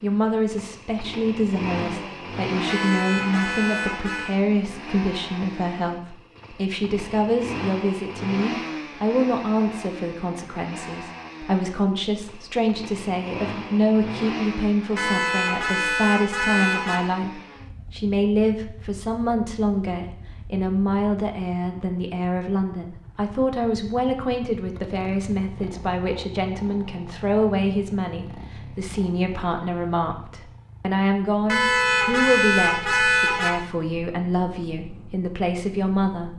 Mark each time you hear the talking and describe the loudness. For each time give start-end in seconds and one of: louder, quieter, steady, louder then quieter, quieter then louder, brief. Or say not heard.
0.0-36.3 steady.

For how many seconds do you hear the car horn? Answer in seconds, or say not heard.
6 s.